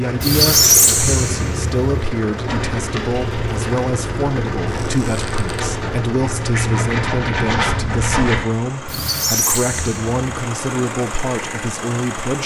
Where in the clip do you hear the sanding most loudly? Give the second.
8 s.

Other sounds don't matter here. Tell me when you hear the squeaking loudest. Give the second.
1 s.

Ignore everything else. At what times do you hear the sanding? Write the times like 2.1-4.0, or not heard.
2.5-8.4.